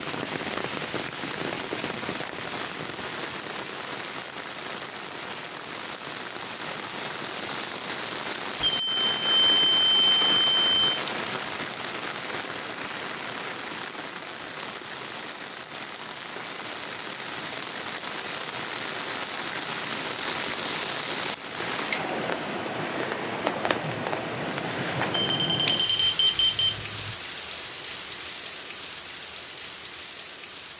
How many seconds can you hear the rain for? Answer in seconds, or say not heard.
31 s.